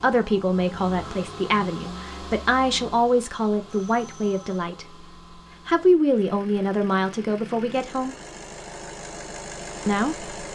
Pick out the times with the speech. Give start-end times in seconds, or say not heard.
0.0-5.0, 5.7-8.2, 9.8-10.5.